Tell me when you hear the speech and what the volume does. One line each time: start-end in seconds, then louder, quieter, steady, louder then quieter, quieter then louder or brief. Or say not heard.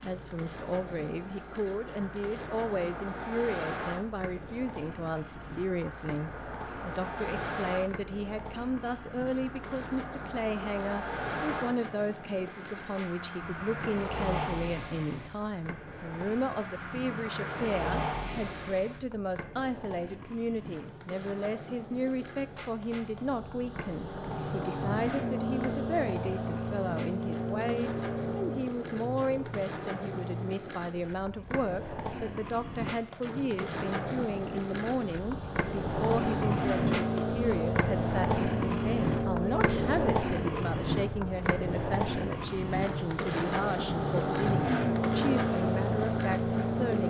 0.0-47.0 steady.